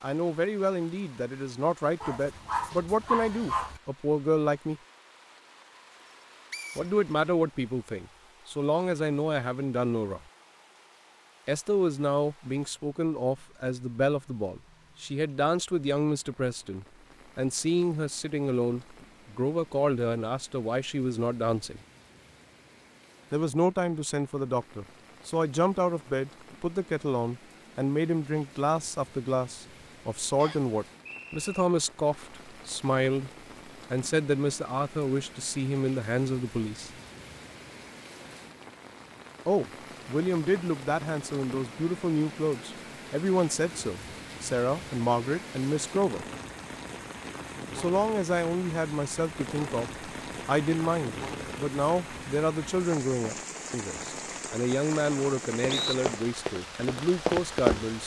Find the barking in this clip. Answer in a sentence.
You can hear the barking from 2.0 to 3.8 s.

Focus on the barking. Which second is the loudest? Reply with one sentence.
The loudest moment of the barking is at 3 seconds.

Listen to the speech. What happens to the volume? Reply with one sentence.
The loudness of the speech stays about the same.